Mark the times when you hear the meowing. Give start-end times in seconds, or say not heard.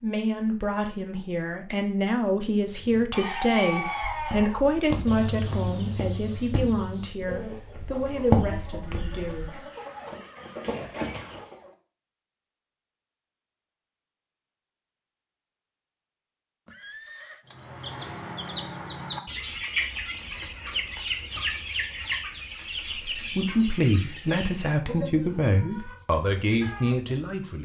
not heard.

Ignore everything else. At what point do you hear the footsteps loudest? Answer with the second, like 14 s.
8 s.